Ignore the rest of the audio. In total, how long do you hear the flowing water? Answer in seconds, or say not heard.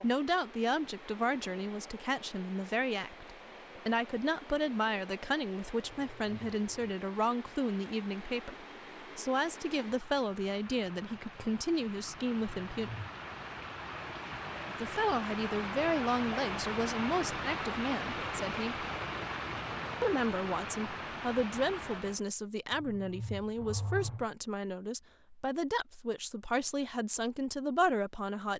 22 s.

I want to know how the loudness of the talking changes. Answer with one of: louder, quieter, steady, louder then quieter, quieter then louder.
steady.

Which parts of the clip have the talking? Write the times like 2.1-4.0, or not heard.
0.0-12.9, 14.8-18.9, 20.0-28.5.